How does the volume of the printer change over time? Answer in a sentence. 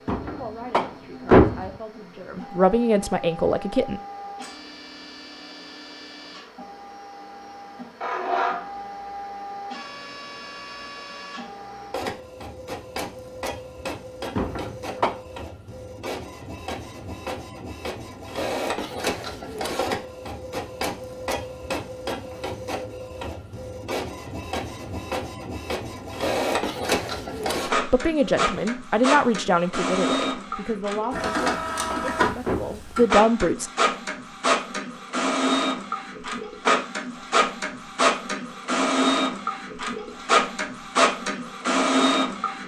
The volume of the printer goes up.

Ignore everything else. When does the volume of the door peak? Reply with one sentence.
The loudest moment of the door is at 1 second.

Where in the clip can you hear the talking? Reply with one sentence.
The talking can be heard from 0.1 to 4.0 s and from 27.7 to 33.7 s.